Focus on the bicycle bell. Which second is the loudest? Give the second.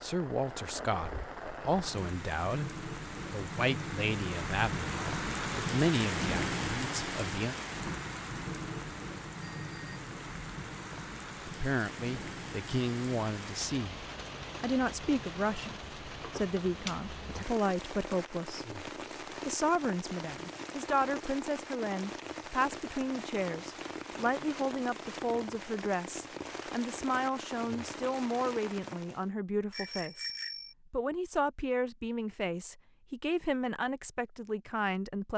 30 s.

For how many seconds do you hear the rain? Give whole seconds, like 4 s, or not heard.
29 s.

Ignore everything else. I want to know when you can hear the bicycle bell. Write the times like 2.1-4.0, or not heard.
9.3-10.0, 29.7-30.8.